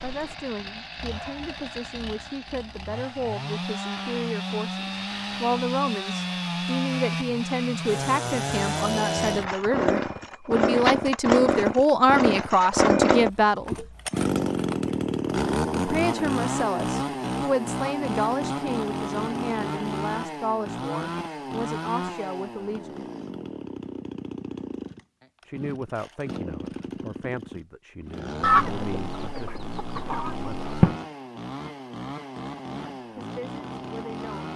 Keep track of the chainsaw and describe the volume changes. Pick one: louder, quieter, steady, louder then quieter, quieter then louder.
louder then quieter.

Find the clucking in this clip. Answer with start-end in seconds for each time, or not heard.
28.4-30.9.